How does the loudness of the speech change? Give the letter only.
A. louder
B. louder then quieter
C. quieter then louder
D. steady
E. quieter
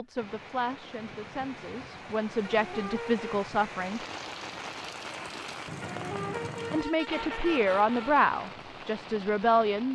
A.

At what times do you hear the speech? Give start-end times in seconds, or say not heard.
0.0-4.0, 6.7-9.9.